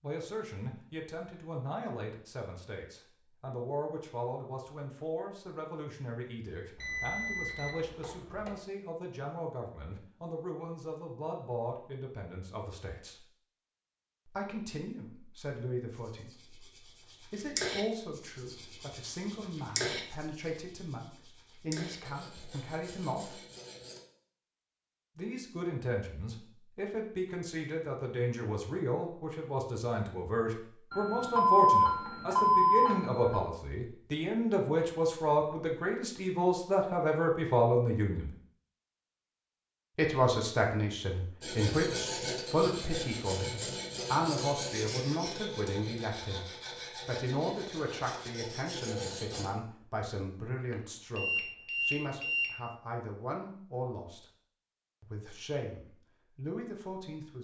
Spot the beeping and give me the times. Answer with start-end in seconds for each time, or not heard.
6.8-8.5, 30.9-33.5, 50.7-52.5.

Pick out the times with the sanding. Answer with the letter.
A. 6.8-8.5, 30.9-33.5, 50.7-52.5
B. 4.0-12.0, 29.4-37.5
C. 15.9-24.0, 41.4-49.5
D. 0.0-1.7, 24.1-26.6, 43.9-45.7
C.